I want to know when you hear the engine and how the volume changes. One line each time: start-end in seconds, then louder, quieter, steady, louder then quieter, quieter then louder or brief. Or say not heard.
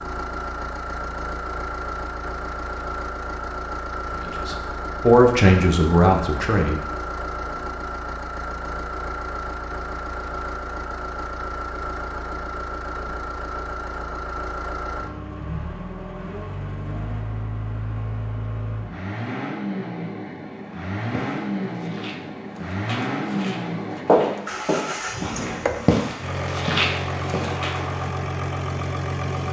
0.0-29.4 steady.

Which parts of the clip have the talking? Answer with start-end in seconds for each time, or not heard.
4.2-6.8.